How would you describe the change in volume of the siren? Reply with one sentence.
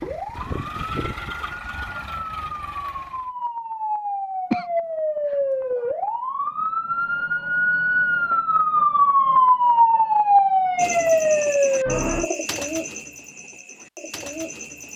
The volume of the siren goes up.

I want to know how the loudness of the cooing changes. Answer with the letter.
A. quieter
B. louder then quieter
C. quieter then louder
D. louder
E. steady
C.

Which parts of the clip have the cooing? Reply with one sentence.
The cooing can be heard from 10.8 to 14.9 s.